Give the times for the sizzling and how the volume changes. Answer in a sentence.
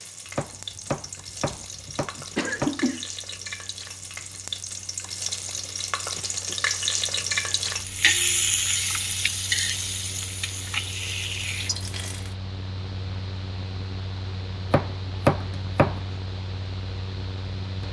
The sizzling can be heard from 0.0 to 12.3 s, getting louder then quieter.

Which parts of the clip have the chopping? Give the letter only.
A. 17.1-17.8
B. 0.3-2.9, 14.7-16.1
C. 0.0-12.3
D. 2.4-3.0
B.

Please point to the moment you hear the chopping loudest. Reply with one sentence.
The loudest moment of the chopping is at 15 seconds.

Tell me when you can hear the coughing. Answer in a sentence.
The coughing can be heard from 2.4 to 3.0 s.